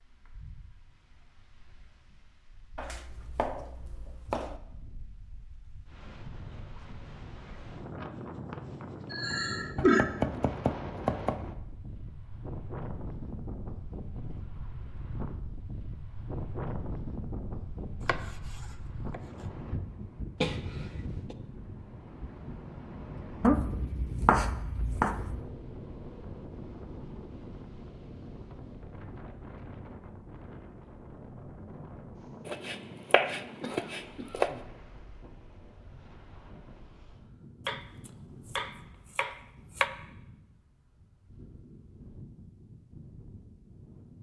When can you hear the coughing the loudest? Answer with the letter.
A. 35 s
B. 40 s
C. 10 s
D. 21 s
C.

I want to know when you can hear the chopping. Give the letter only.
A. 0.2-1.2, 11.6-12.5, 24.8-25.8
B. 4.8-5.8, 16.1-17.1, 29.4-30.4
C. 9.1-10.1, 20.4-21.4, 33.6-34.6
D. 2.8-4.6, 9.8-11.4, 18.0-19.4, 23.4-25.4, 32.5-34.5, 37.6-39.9
D.